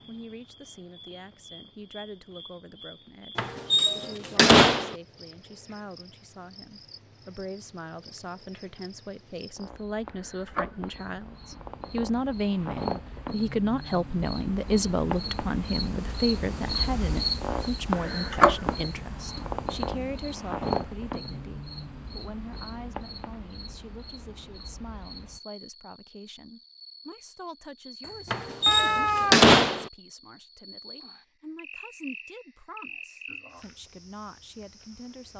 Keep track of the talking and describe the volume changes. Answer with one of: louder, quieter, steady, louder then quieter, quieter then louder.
louder then quieter.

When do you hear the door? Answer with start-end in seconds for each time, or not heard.
3.4-5.0, 28.3-29.9.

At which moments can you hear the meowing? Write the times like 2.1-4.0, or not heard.
28.0-29.4.